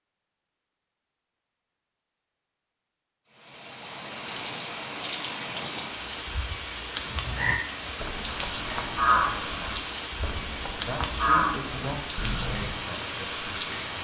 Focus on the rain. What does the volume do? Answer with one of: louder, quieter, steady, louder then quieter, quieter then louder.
steady.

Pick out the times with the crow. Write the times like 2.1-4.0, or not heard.
6.9-12.8.